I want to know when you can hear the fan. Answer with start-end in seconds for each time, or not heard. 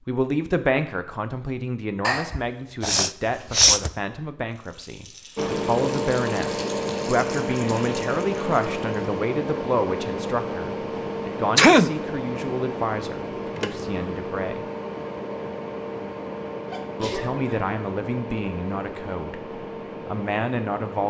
5.3-21.0.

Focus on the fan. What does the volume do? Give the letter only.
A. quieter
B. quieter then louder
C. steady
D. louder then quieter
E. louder
A.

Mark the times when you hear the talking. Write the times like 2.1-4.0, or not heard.
0.1-14.7, 17.0-21.0.